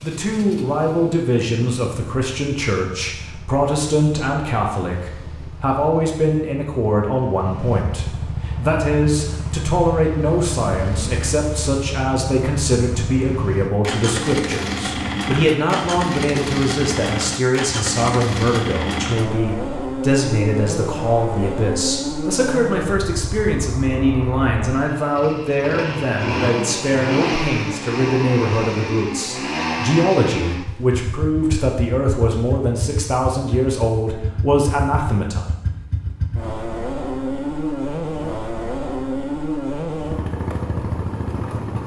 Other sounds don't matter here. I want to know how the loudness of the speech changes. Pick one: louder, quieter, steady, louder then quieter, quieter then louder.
steady.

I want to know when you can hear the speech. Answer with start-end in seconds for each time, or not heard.
0.0-35.4.